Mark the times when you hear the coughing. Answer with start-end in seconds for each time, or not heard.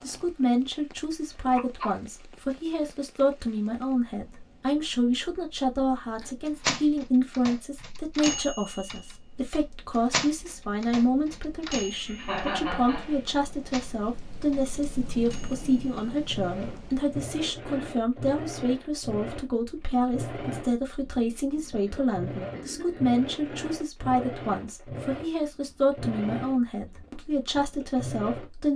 1.3-1.9, 11.9-13.3, 21.6-23.0.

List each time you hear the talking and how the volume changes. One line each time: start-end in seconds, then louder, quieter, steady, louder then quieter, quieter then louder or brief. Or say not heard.
0.0-28.7 steady.